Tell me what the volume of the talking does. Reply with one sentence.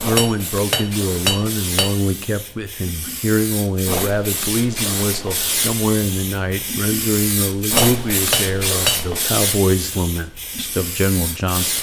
The volume of the talking stays about the same.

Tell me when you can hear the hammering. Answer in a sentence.
The hammering can be heard from 0.1 to 1.9 s and from 7.8 to 9.1 s.